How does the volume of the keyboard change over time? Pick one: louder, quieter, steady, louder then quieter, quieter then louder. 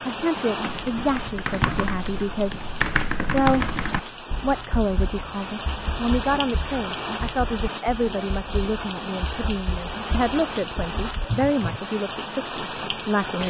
quieter then louder.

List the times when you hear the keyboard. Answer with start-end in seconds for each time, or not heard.
0.6-11.8.